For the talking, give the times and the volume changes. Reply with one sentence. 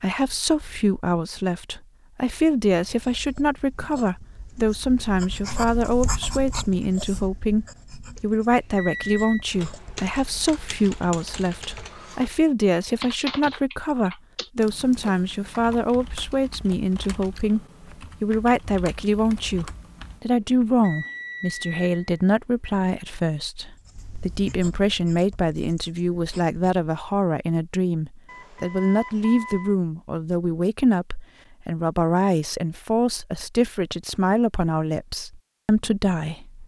The talking can be heard from 0.0 to 36.6 s, at a steady volume.